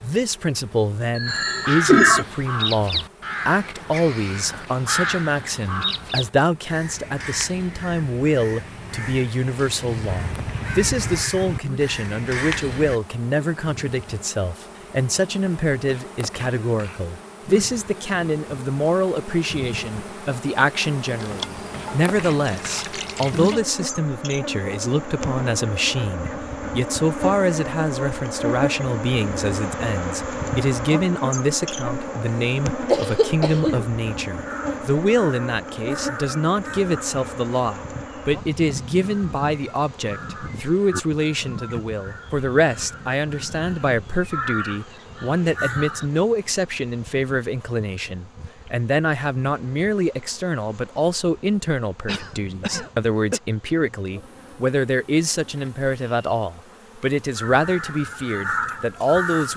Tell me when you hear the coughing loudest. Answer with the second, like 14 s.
2 s.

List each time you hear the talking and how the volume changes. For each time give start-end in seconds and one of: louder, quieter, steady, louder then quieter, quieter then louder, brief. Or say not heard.
0.0-59.5 steady.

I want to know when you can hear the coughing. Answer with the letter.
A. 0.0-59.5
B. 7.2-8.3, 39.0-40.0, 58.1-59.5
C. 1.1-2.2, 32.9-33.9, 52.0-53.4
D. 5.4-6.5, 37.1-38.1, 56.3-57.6
C.